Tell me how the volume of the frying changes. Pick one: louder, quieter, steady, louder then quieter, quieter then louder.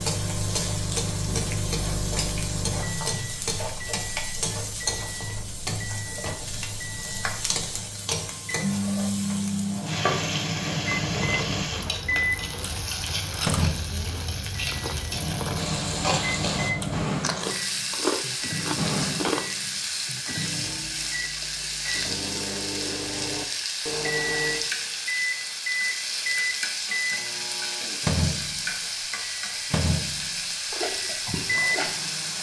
steady.